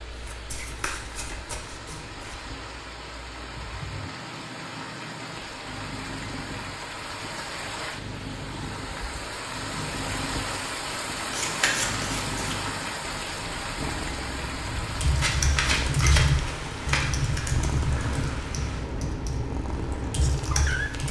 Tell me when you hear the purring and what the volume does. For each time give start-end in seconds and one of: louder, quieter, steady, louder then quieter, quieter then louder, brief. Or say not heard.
0.0-21.0 louder.